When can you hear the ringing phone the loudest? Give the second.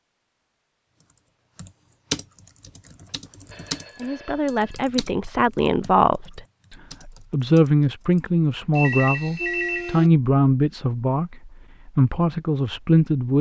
10 s.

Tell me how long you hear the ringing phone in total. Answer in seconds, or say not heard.
3 s.